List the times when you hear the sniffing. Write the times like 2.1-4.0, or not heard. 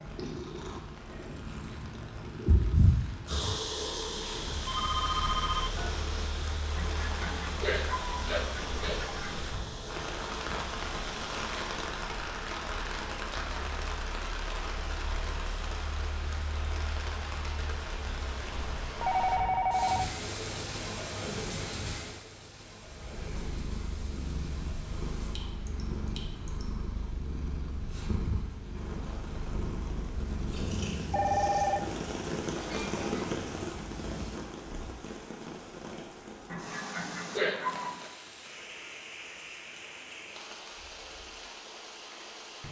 6.8-9.3, 36.5-38.1.